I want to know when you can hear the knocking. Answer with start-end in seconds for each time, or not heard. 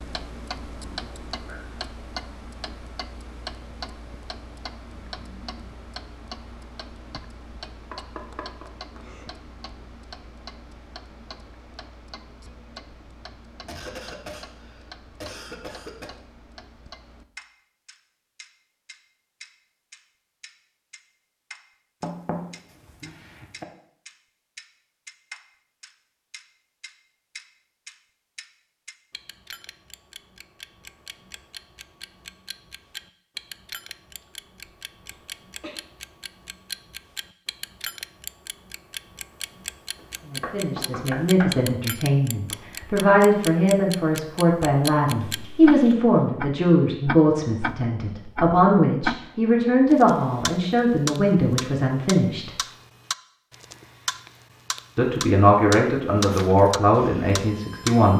7.9-9.2, 22.0-23.6, 40.0-41.6.